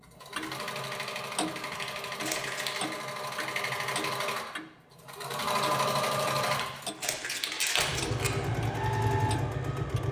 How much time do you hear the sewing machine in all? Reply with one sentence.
The sewing machine can be heard for 10 seconds in total.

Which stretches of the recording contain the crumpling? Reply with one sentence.
The crumpling can be heard from 1.6 to 2.8 s and from 6.5 to 8.3 s.